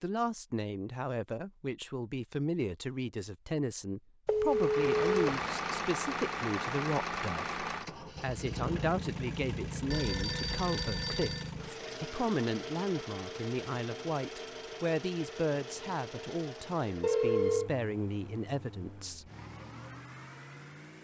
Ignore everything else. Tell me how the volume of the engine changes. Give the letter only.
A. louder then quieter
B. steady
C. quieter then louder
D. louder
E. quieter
E.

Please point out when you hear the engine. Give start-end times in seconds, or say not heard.
4.5-20.9.